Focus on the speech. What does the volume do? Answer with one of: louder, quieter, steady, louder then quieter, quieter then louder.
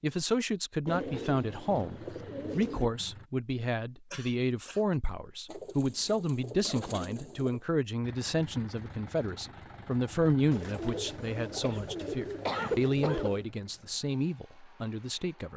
steady.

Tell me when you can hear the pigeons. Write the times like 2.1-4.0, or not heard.
0.8-2.9, 5.5-7.6, 10.5-13.5.